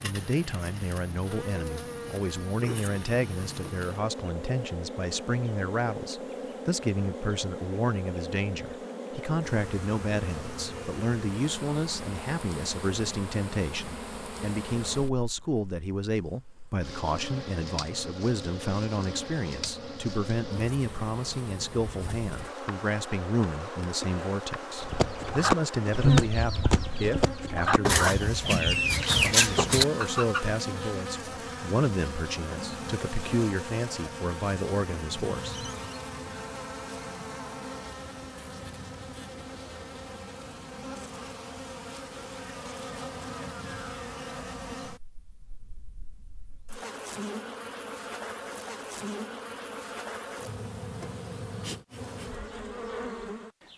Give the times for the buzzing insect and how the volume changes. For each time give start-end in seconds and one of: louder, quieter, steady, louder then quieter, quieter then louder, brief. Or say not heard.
0.0-53.7 steady.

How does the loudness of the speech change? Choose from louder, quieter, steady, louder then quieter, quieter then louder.
steady.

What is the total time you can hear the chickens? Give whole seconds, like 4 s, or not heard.
6 s.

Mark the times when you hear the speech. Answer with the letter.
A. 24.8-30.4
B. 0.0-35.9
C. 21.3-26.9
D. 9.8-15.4
B.